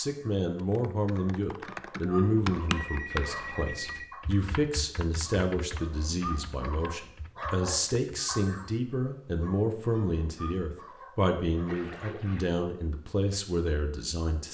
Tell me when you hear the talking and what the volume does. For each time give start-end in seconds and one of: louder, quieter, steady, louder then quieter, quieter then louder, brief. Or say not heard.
0.0-14.4 steady.